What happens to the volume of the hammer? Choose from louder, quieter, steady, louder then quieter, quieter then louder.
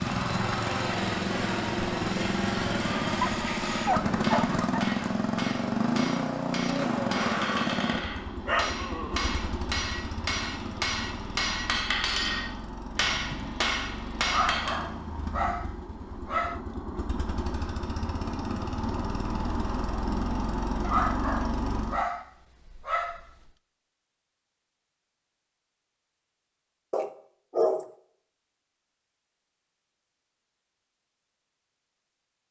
louder.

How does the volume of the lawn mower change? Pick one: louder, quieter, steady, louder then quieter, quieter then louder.
quieter then louder.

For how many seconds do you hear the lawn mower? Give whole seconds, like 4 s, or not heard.
22 s.